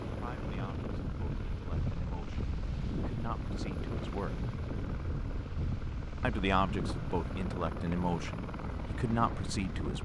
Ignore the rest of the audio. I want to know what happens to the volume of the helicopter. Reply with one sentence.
The volume of the helicopter stays about the same.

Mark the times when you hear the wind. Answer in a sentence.
You can hear the wind from 0.0 to 9.9 s.